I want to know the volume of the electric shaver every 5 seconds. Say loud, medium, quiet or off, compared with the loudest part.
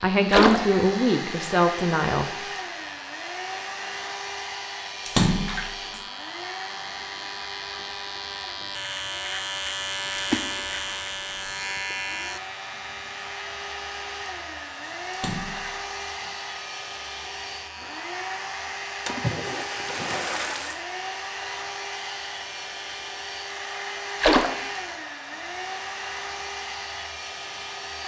medium, loud, loud, medium, medium, medium.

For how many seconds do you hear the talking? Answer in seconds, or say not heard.
2 s.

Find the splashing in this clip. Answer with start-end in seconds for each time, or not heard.
0.3-0.8, 5.0-6.0, 10.2-11.6, 15.1-16.1, 19.1-20.9, 24.2-24.6.